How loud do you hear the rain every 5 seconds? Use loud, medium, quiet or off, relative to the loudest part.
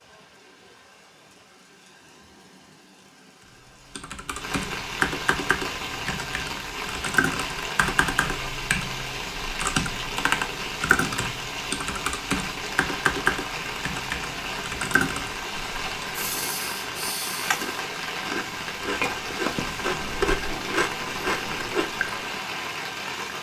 medium, loud, loud, loud, loud.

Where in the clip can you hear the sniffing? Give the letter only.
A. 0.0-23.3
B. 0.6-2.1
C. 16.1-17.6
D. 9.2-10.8
C.